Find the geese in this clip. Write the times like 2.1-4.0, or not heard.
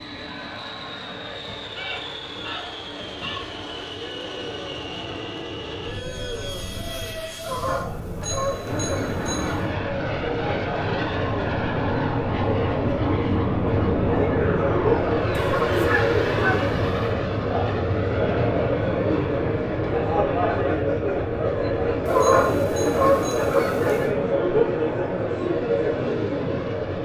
1.8-3.5, 7.4-9.7, 15.3-16.9, 22.1-24.1.